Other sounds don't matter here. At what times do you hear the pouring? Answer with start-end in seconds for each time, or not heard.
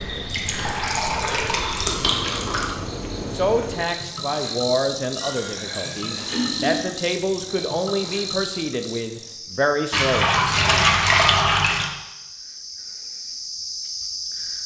0.2-2.8, 5.2-7.0, 9.9-11.9.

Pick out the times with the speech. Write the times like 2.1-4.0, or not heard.
3.3-10.4.